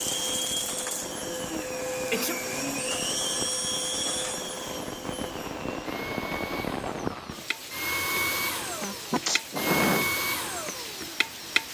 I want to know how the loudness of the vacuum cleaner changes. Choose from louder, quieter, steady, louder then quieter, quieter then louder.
quieter then louder.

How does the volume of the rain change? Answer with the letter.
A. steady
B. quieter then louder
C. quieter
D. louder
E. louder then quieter
E.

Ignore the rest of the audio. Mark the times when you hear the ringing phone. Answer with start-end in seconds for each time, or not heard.
not heard.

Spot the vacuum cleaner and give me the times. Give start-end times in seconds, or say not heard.
0.0-11.7.